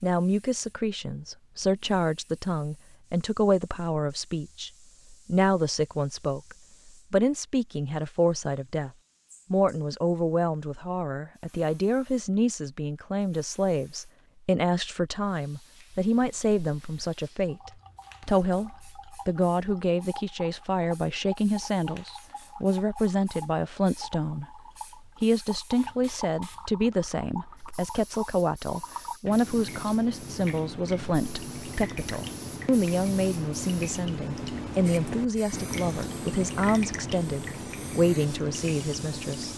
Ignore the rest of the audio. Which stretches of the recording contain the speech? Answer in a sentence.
The speech can be heard from 0.0 to 8.9 s, from 9.5 to 24.6 s and from 25.2 to 39.5 s.